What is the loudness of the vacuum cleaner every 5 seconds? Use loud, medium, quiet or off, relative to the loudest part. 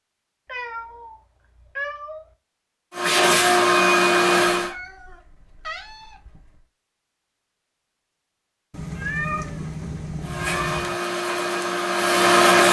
loud, off, loud.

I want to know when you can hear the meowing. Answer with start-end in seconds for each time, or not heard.
0.5-2.2, 4.5-6.7, 8.7-11.0.